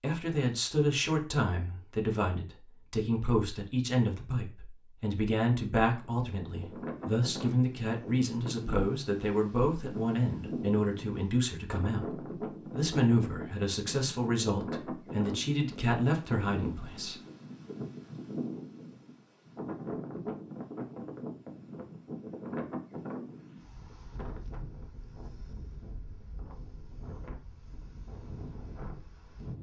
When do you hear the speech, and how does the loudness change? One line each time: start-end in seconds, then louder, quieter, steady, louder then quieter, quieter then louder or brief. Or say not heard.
0.0-17.1 steady.